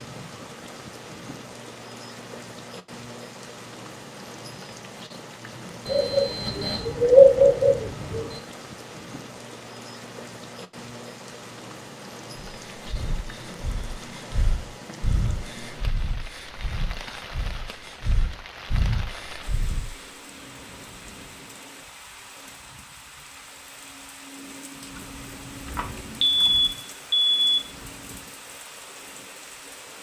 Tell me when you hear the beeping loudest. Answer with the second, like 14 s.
7 s.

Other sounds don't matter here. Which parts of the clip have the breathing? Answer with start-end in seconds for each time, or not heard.
12.6-20.1.